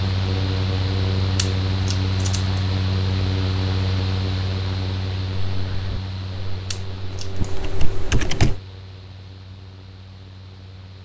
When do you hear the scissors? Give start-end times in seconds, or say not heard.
1.4-2.6, 6.7-7.3.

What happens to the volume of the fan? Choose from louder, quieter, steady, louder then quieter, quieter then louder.
quieter.